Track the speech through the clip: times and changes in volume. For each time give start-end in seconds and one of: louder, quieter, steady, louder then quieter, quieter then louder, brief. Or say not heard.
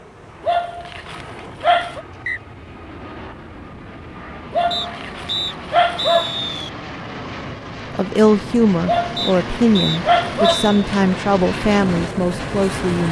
8.0-13.0 steady.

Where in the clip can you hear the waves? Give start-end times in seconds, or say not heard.
not heard.